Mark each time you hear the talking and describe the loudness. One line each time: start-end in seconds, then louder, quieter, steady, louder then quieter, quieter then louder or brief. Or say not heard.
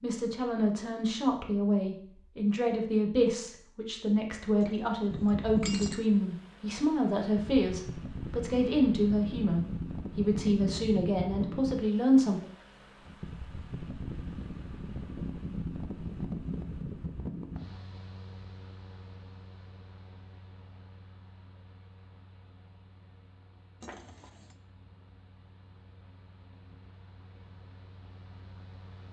0.0-12.4 steady.